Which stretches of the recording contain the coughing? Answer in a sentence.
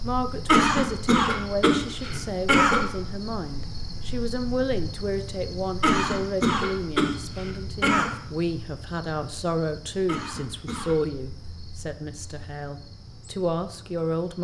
The coughing can be heard from 0.5 to 2.8 s, from 5.8 to 8.1 s and from 10.1 to 10.9 s.